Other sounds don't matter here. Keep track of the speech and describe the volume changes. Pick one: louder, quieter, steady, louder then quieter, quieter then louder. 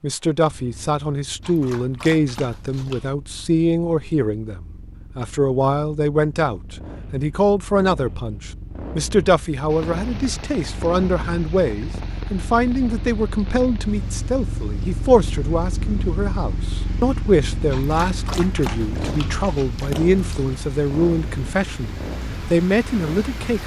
steady.